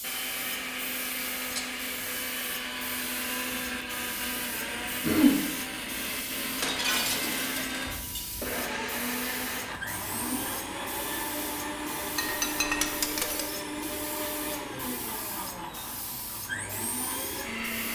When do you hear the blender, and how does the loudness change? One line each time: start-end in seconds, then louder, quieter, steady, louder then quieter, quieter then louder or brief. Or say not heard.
0.0-17.9 steady.